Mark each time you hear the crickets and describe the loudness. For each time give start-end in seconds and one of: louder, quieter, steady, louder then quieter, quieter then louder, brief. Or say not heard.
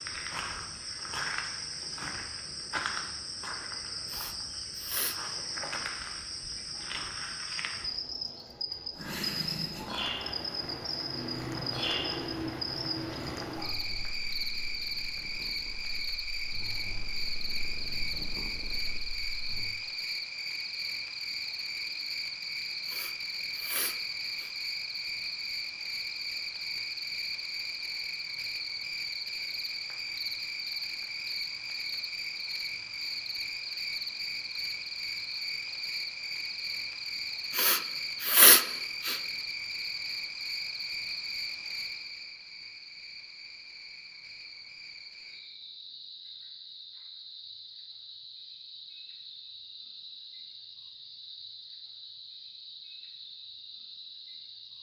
0.0-54.7 quieter.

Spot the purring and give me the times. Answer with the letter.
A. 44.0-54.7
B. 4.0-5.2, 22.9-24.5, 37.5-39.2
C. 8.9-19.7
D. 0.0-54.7
C.